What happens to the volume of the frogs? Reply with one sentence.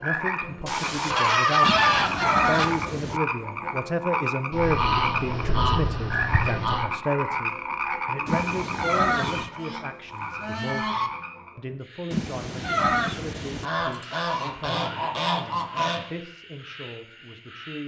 The loudness of the frogs goes down.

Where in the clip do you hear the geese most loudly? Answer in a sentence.
The loudest moment of the geese is at 2 seconds.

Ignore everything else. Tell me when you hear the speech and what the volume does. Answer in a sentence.
You can hear the speech from 0.0 to 17.8 s, getting quieter.